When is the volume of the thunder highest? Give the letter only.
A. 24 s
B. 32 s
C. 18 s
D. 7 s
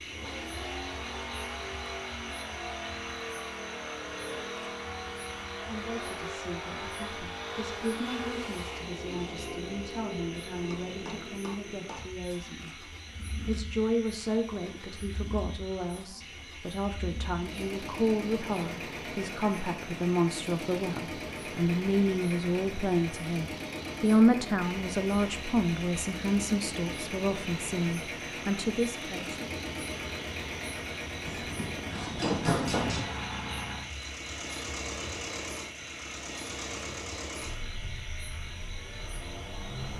B.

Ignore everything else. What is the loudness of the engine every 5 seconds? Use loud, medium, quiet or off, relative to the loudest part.
loud, loud, medium, loud, loud, loud, loud, loud.